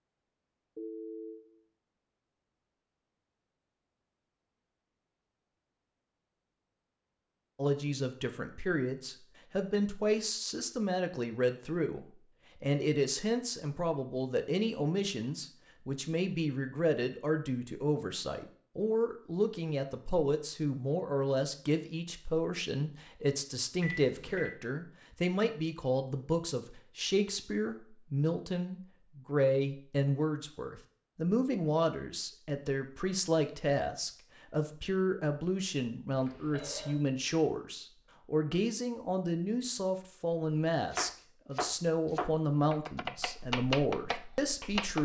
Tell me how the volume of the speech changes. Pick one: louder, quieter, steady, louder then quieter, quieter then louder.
steady.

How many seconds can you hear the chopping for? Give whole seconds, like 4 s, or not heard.
4 s.